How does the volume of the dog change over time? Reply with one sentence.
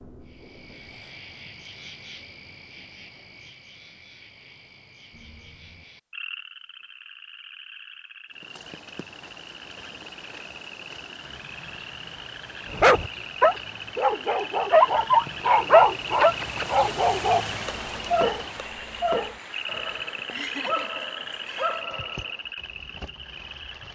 The loudness of the dog goes down.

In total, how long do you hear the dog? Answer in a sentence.
The dog can be heard for 10 seconds in total.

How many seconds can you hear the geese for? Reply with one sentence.
You can't hear the geese here.